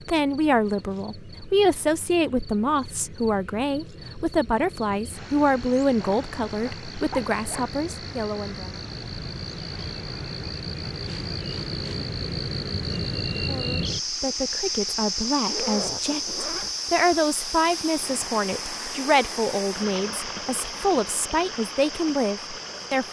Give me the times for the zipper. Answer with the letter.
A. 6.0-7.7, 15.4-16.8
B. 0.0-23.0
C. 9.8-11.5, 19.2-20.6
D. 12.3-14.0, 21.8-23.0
A.